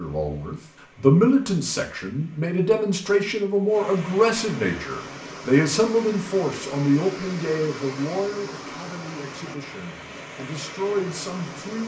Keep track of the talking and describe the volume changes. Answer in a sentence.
The volume of the talking goes down.